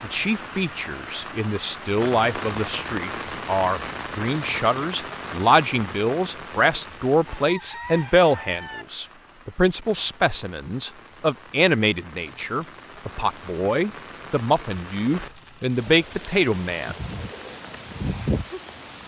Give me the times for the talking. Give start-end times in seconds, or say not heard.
0.0-16.9.